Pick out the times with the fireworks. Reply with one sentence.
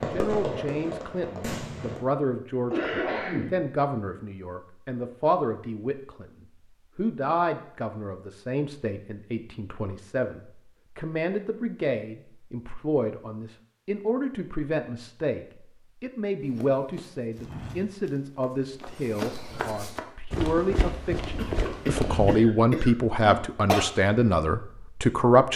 The fireworks can be heard from 0.0 to 2.0 s.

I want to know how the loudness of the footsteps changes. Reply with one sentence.
The volume of the footsteps goes down, then up.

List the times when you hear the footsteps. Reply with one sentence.
The footsteps can be heard from 16.5 to 22.4 s.